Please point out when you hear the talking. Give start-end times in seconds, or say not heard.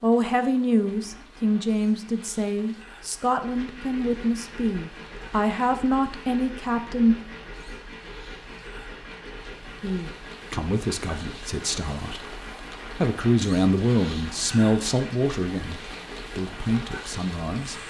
0.0-7.2, 9.8-12.3, 12.9-17.8.